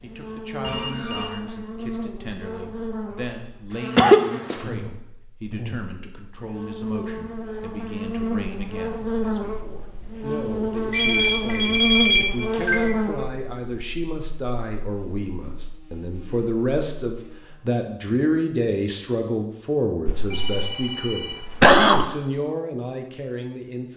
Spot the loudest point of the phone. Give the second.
12 s.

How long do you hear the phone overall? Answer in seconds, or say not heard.
4 s.